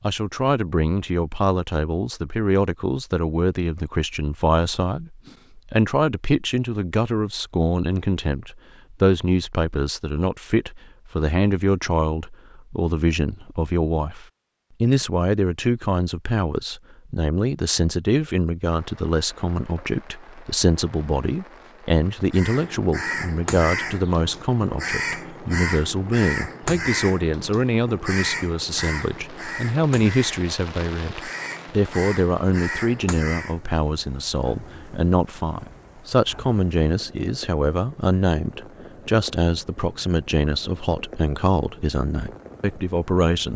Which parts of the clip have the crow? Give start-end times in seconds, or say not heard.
22.3-33.5.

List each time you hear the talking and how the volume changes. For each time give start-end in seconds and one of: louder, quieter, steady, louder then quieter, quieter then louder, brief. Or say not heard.
0.0-43.5 steady.